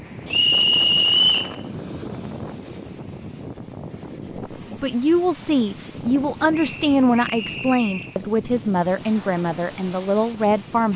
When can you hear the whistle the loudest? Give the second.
1 s.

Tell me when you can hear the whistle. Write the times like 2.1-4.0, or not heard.
0.2-1.6, 6.5-8.2.